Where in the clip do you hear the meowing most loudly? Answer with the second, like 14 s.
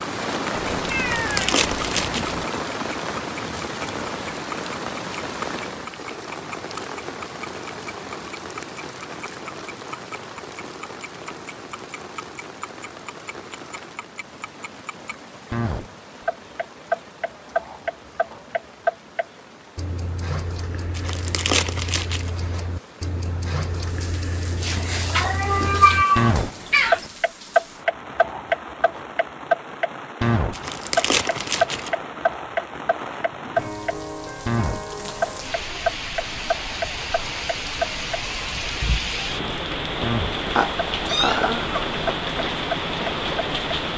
26 s.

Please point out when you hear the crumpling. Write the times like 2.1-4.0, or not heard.
0.9-2.4, 20.9-22.3, 30.5-31.9.